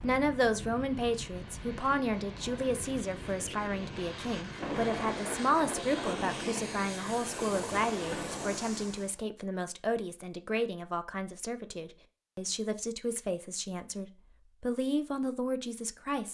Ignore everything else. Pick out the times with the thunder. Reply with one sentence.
You can hear the thunder from 4.6 to 8.7 s.